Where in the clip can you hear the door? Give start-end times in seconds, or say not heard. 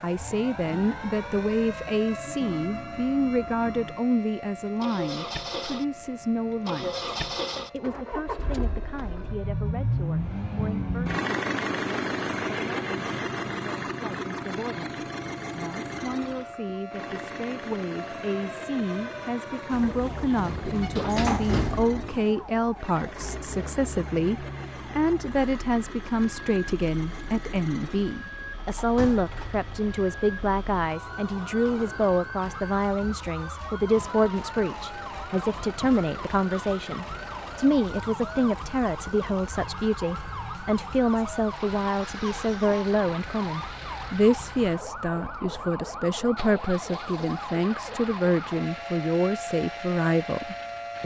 19.7-22.2, 28.8-29.4.